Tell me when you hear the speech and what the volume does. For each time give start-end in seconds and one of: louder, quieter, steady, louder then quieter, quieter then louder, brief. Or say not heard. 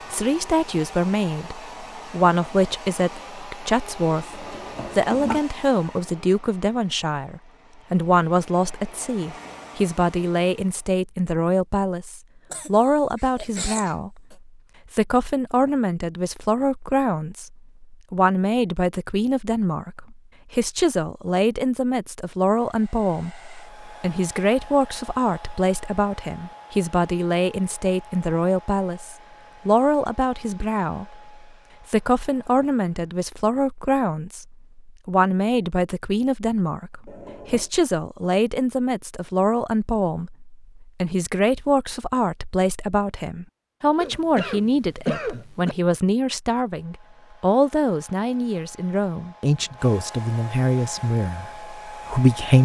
0.1-52.6 steady.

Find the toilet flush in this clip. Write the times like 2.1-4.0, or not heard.
4.3-5.4, 37.0-37.7.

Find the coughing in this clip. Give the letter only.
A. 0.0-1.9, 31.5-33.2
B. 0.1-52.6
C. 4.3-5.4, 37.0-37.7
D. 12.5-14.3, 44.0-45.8
D.